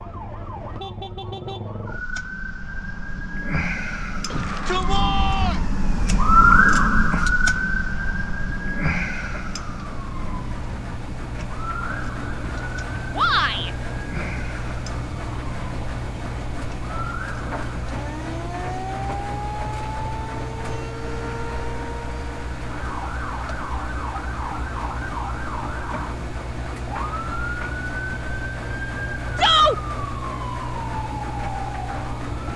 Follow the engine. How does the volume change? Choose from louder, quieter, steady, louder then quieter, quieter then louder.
steady.